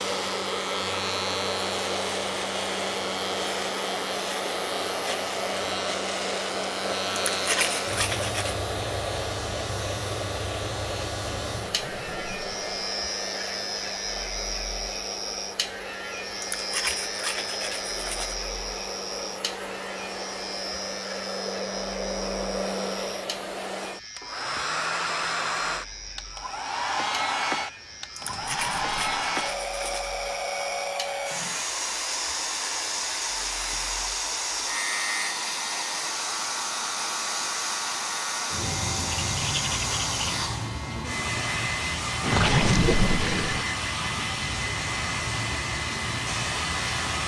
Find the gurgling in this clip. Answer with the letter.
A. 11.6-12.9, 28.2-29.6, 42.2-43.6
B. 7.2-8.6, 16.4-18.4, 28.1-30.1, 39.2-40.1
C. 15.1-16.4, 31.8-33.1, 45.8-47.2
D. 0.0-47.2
A.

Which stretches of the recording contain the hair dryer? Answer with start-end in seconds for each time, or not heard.
0.0-47.2.